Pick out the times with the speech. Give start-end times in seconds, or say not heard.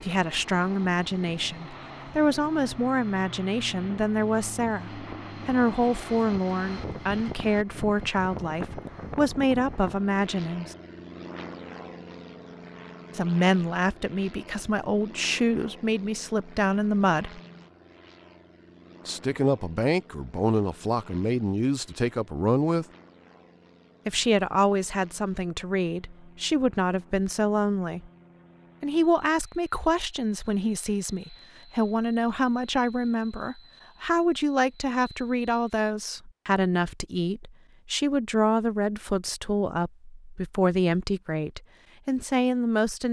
0.0-10.8, 13.2-17.4, 19.1-22.9, 24.1-28.1, 28.8-43.0.